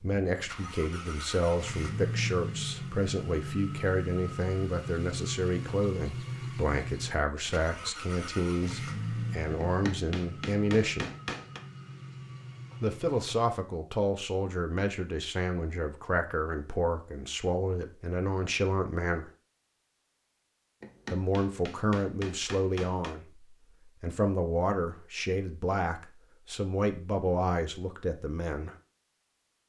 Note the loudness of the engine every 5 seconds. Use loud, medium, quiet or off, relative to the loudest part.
loud, loud, medium, off, off, off.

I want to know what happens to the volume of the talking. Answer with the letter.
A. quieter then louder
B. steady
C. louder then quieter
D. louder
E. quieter
B.